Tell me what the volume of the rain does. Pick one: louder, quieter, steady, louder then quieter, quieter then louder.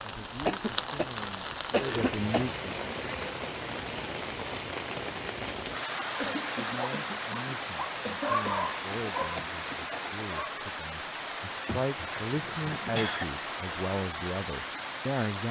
steady.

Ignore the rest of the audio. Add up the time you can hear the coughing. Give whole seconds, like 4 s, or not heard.
6 s.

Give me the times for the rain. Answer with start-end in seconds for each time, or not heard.
0.0-15.4.